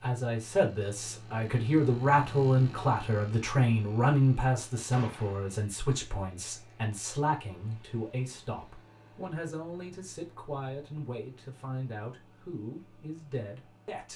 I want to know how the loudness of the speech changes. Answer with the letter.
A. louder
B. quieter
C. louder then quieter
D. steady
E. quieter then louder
B.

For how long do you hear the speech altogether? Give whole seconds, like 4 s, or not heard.
14 s.